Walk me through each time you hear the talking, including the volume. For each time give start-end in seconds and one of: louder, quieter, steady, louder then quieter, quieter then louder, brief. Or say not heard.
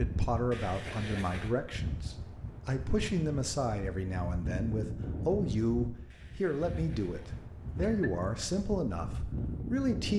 0.0-10.1 steady.